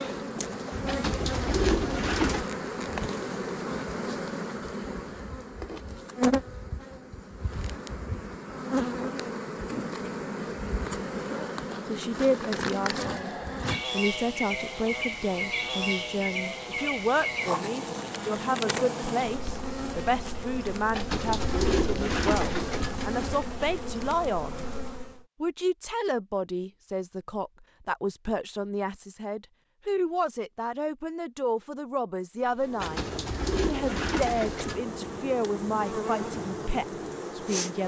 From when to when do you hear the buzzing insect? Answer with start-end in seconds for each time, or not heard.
0.0-25.2, 32.4-37.8.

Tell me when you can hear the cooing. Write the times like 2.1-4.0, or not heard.
0.8-2.5, 20.9-23.4, 32.8-34.8.